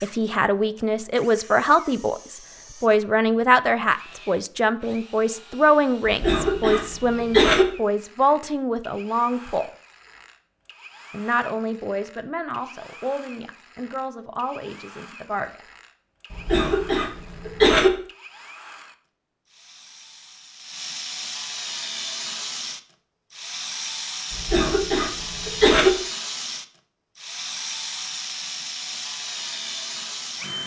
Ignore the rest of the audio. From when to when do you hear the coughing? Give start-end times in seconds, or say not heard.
6.0-7.7, 16.3-17.9, 24.3-25.9.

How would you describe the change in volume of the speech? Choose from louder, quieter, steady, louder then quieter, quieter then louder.
quieter.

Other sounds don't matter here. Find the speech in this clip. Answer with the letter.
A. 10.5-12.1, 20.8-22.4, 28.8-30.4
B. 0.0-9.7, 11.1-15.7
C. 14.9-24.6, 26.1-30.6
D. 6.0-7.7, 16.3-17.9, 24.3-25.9
B.